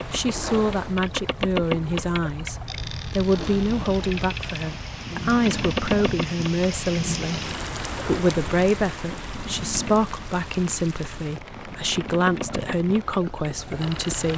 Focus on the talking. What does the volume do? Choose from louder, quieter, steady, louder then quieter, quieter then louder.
steady.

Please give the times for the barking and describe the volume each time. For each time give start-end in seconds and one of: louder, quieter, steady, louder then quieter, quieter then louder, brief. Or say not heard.
not heard.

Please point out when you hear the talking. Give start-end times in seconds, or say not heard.
0.1-14.3.